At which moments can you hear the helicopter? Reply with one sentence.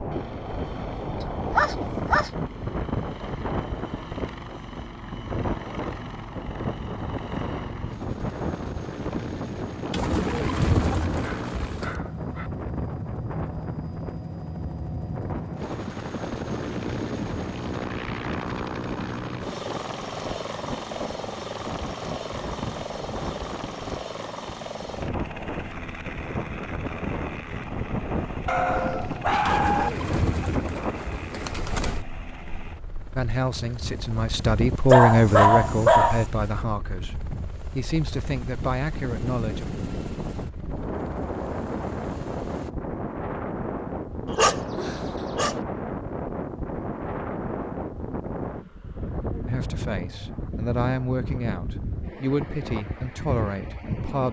The helicopter can be heard from 0.0 to 42.7 s.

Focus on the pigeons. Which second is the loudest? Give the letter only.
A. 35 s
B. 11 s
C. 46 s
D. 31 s
B.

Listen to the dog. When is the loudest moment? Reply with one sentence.
The loudest moment of the dog is at 35 seconds.